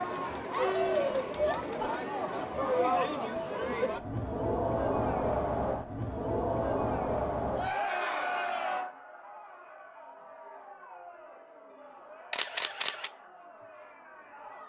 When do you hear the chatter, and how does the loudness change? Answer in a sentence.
You can hear the chatter from 0.0 to 14.6 s, getting quieter.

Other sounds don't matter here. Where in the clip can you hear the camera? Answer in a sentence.
The camera can be heard from 12.3 to 13.1 s.